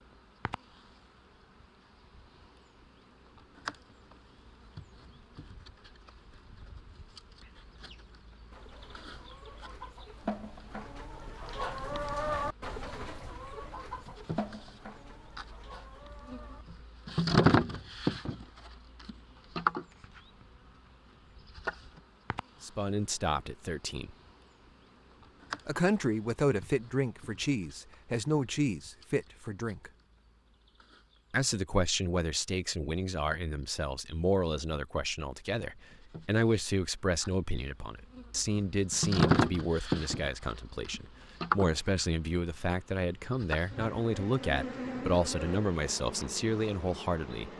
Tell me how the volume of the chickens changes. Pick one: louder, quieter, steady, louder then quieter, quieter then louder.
louder then quieter.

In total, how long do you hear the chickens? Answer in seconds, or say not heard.
9 s.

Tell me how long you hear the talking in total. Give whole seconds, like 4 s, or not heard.
22 s.